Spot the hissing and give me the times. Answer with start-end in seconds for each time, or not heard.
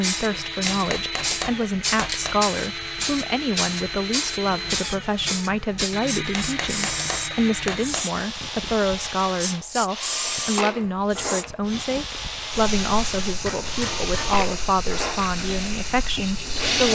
0.0-16.8.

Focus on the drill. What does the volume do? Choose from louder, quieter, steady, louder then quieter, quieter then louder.
steady.